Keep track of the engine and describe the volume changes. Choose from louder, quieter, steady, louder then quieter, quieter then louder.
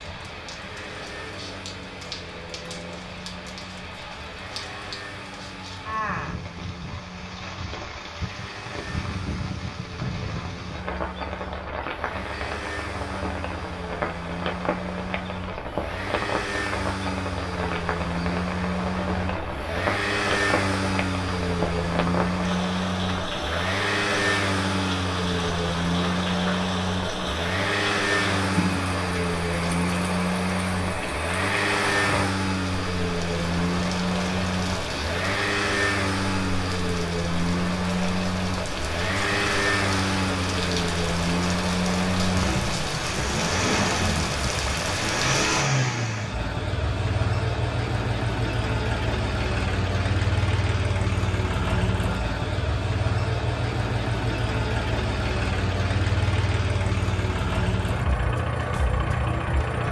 louder.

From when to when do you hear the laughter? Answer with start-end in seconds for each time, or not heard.
not heard.